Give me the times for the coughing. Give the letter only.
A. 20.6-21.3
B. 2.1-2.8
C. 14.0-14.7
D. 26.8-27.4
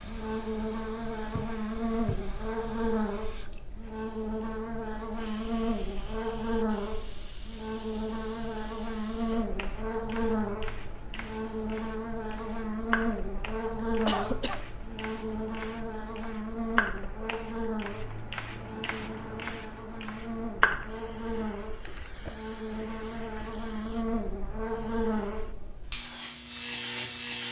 C.